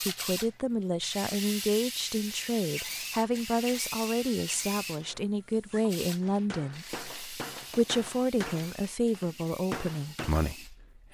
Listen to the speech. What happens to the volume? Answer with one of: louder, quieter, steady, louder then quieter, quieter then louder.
steady.